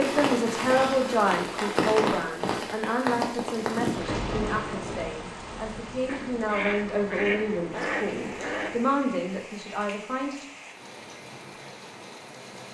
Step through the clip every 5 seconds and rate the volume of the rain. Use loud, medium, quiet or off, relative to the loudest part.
loud, quiet, quiet.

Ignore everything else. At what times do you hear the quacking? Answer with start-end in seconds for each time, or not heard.
6.0-8.9.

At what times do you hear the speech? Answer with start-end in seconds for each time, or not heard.
0.0-10.4.